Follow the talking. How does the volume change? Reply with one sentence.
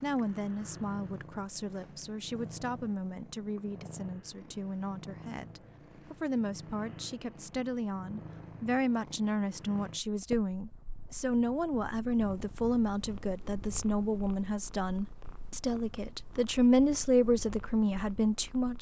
The loudness of the talking goes up.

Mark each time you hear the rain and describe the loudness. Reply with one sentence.
The rain can't be heard in this clip.